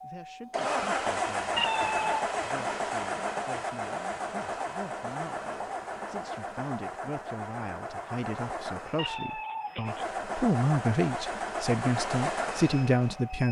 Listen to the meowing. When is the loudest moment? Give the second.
2 s.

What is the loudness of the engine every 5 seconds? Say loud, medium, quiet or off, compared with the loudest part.
loud, medium, loud.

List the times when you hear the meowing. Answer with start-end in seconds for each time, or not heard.
1.6-2.2, 8.9-10.1.